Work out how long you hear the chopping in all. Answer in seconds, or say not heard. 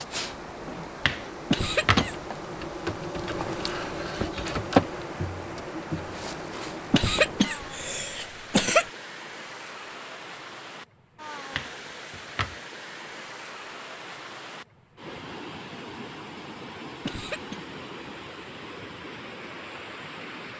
2 s.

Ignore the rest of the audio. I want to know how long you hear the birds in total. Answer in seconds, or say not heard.
not heard.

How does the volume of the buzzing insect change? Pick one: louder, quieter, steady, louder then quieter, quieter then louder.
louder then quieter.